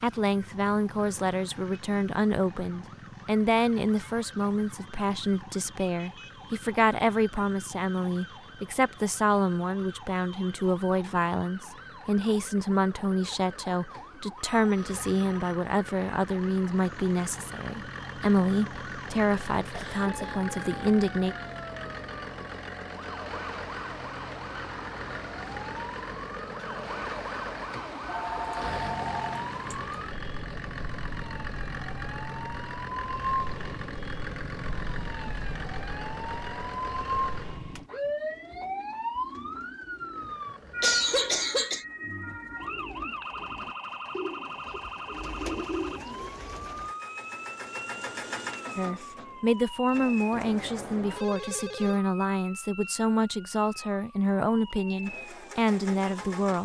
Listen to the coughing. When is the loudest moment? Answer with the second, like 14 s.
41 s.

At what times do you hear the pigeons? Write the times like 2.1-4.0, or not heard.
37.6-47.0.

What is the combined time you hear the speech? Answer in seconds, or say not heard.
29 s.